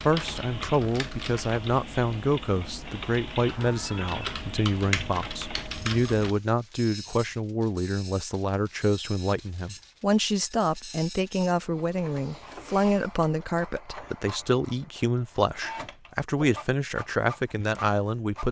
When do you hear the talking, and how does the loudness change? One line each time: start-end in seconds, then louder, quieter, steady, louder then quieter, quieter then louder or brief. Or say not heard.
0.0-18.4 steady.